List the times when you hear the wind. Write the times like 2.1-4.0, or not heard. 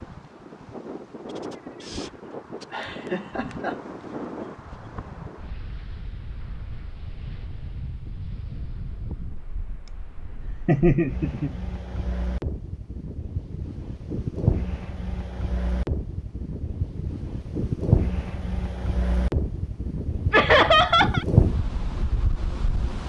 0.0-23.0.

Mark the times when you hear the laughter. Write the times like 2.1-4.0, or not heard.
2.7-3.8, 9.8-11.6, 20.3-21.2.